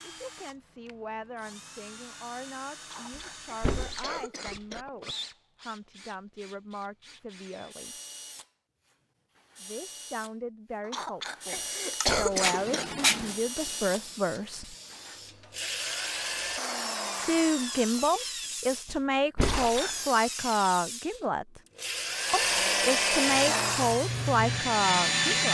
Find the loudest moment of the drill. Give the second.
23 s.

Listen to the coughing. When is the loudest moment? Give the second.
12 s.